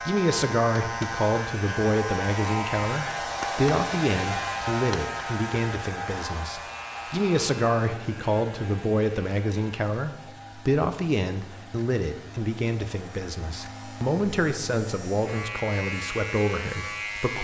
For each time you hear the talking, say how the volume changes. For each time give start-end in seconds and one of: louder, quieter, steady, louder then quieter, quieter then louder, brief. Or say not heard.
0.0-17.3 steady.